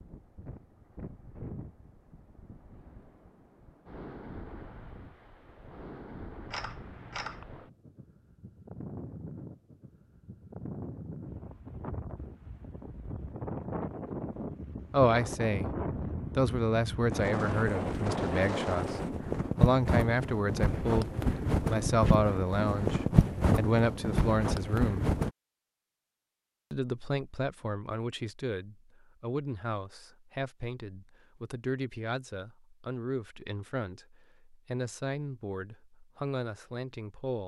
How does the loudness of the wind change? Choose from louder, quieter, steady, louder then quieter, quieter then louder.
louder.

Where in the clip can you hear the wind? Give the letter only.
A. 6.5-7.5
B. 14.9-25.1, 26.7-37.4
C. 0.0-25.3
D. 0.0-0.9
C.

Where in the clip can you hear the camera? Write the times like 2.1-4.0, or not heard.
6.5-7.5.